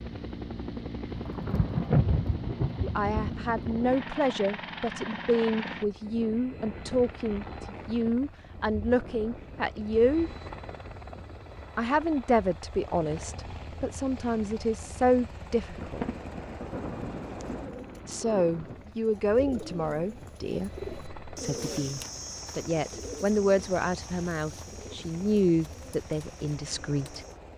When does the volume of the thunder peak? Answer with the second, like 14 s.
2 s.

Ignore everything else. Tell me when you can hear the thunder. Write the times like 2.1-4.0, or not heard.
1.1-4.0, 15.8-18.8.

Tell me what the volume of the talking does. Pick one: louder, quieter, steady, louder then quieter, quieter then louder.
steady.